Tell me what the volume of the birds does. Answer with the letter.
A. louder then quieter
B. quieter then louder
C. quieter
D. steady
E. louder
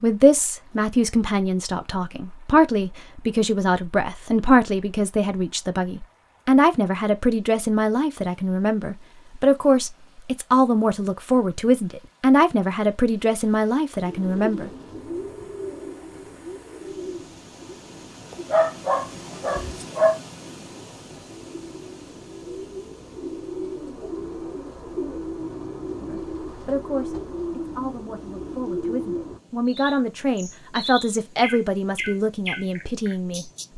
B.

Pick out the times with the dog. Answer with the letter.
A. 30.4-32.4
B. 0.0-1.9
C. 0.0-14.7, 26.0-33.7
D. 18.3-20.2
D.